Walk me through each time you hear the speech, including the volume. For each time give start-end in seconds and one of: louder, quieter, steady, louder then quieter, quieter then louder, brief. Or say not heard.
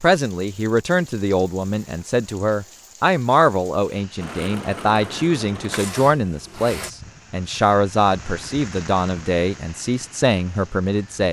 0.0-11.2 steady.